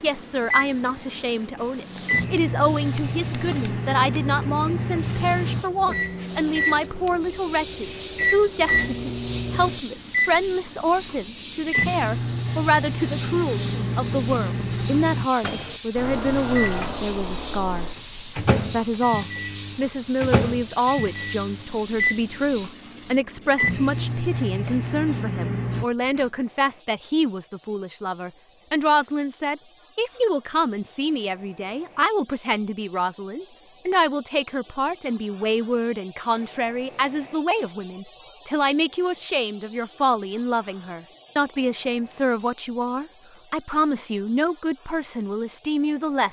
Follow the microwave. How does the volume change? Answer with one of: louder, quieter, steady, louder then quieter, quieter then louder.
steady.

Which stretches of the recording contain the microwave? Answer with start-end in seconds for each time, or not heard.
0.0-25.9.